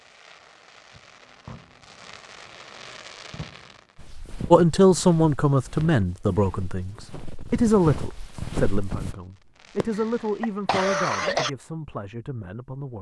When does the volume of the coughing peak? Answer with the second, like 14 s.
11 s.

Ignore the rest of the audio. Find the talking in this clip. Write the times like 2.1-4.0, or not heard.
4.5-12.9.